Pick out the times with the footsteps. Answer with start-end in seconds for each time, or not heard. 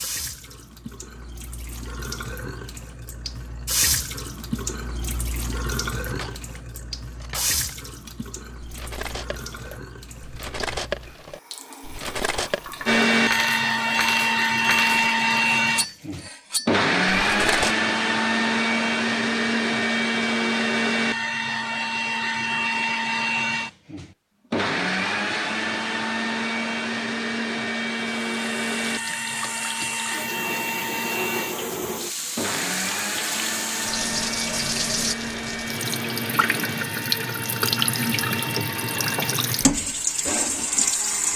not heard.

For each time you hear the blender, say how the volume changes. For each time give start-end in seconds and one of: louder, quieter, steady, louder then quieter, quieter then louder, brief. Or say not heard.
12.8-41.3 quieter.